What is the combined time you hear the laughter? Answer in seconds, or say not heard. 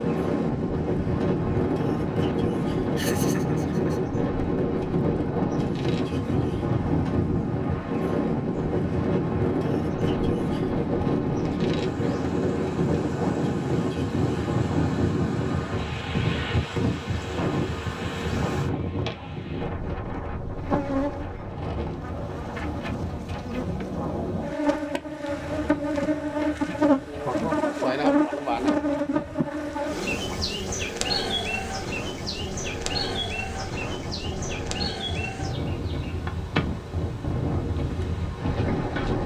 2 s.